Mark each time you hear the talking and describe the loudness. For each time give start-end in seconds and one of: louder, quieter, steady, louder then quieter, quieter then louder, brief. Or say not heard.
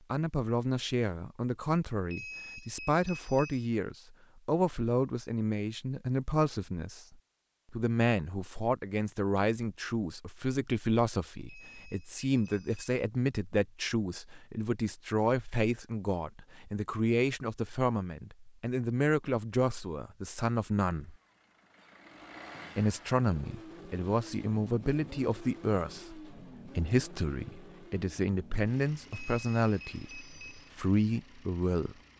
0.1-21.1 steady
22.8-31.9 steady.